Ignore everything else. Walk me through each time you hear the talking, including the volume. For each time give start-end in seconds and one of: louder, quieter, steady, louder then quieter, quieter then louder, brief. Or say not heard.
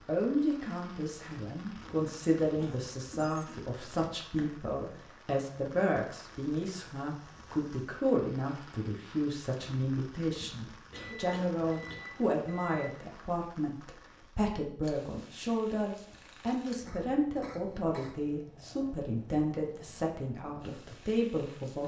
0.1-21.8 steady.